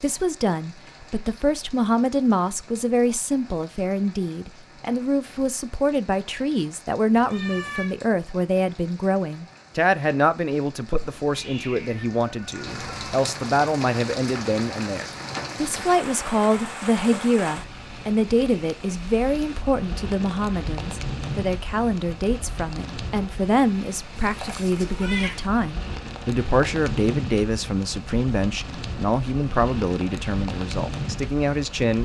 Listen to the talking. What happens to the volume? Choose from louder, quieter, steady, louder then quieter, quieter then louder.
steady.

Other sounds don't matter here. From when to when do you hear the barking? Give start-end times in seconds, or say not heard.
not heard.